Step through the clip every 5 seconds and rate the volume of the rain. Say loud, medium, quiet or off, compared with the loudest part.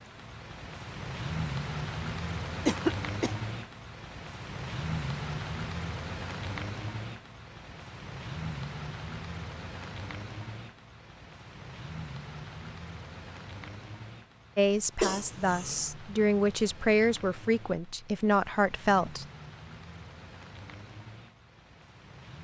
loud, loud, medium, medium, quiet.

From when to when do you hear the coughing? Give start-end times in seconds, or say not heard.
2.6-3.4, 15.0-15.8.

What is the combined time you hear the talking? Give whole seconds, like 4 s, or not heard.
5 s.